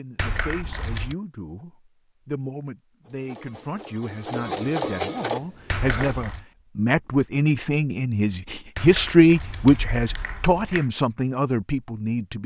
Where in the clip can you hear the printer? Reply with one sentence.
You can hear the printer from 3.0 to 6.2 s.